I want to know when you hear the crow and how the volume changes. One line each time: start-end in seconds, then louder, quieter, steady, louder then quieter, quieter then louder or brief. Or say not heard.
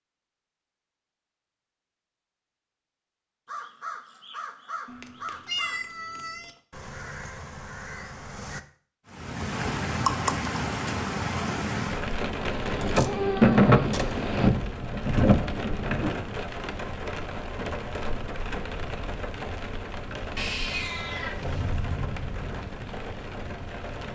3.5-8.6 steady.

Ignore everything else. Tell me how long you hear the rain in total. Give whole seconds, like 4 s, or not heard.
15 s.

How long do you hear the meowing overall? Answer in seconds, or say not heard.
5 s.